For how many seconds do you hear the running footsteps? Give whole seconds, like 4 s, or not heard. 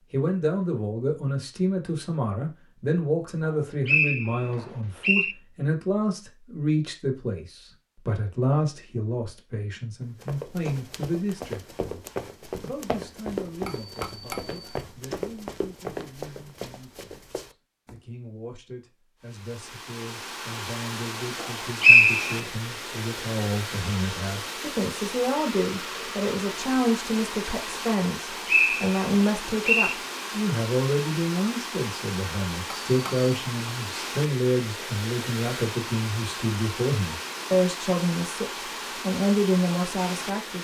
8 s.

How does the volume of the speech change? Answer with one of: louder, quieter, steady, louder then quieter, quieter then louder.
quieter then louder.